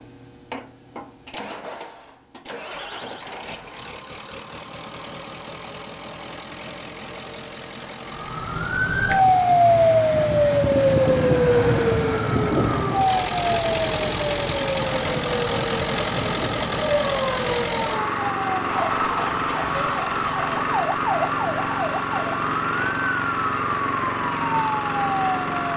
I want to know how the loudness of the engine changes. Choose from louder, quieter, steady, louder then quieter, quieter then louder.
louder.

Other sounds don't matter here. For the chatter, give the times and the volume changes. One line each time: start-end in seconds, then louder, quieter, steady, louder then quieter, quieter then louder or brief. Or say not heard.
not heard.